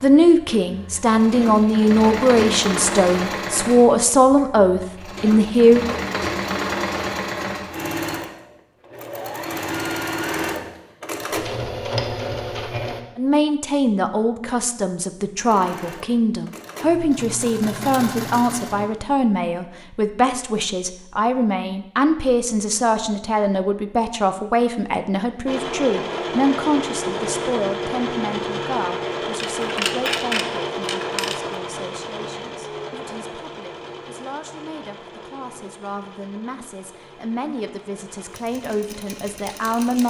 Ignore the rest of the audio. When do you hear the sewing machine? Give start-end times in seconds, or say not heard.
0.0-13.0, 15.4-18.9, 25.4-40.0.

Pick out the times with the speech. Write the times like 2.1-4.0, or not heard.
0.0-5.8, 13.2-40.0.